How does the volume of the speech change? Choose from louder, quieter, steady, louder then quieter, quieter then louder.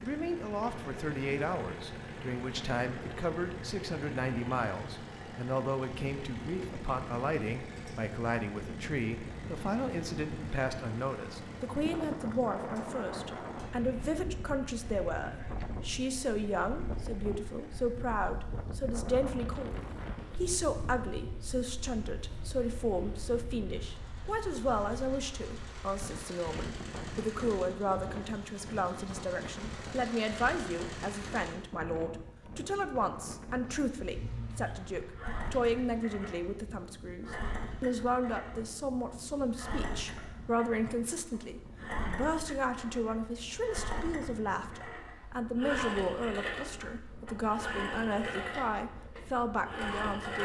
steady.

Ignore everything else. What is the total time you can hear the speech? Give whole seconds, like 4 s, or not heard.
50 s.